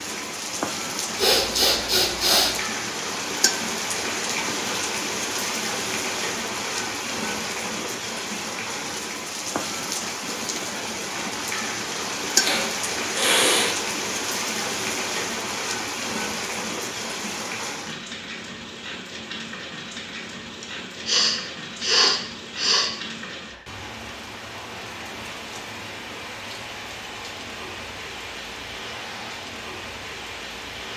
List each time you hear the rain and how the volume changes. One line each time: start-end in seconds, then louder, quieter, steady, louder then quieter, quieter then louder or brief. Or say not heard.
0.0-30.9 quieter.